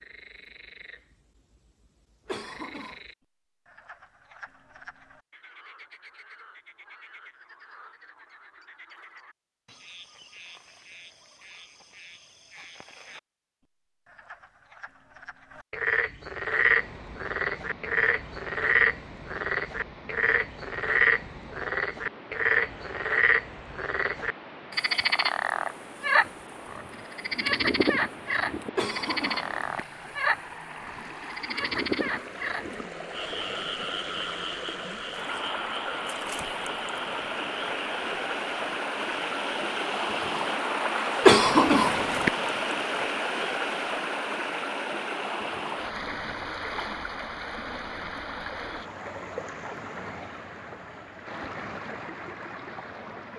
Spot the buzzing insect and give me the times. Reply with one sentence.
You can't hear the buzzing insect here.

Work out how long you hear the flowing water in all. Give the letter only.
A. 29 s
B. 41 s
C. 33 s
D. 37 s
D.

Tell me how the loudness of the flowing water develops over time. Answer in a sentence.
The volume of the flowing water goes up, then down.